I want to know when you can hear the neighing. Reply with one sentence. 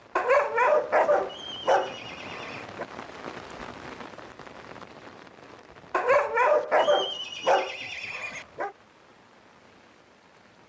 You can hear the neighing from 1.2 to 2.6 s and from 6.8 to 8.4 s.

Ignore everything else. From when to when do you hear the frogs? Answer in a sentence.
You can't hear the frogs here.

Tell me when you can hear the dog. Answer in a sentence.
The dog can be heard from 0.1 to 2.9 s and from 5.9 to 8.7 s.